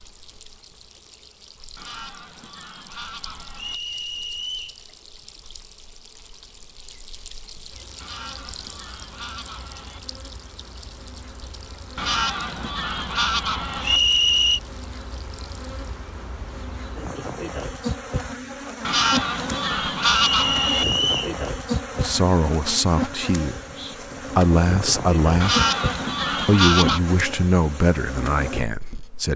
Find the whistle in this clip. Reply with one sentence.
The whistle can be heard from 3.5 to 4.8 s, from 13.8 to 14.6 s and from 20.3 to 21.4 s.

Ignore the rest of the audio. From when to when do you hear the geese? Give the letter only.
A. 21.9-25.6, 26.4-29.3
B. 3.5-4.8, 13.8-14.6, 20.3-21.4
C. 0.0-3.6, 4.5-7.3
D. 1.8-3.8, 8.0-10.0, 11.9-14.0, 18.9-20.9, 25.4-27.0
D.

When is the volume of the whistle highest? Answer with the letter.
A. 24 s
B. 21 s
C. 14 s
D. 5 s
C.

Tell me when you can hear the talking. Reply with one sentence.
The talking can be heard from 21.9 to 25.6 s and from 26.4 to 29.3 s.